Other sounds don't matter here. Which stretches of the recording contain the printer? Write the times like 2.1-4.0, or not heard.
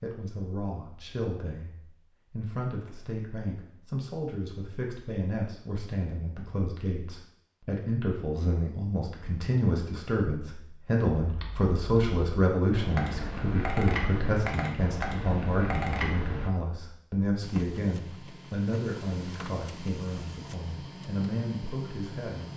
17.4-22.5.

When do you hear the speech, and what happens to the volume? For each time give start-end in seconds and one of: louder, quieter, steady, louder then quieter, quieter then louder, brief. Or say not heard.
0.0-1.7 brief
2.3-22.5 louder then quieter.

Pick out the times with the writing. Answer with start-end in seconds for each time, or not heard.
not heard.